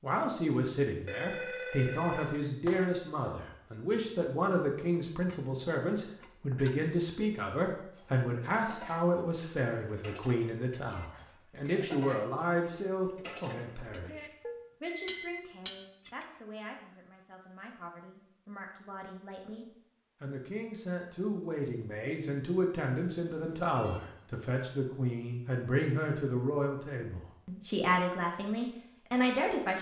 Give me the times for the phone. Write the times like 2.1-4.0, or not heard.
1.1-2.9, 14.4-15.4, 23.3-24.1.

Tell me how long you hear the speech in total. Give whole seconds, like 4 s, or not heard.
30 s.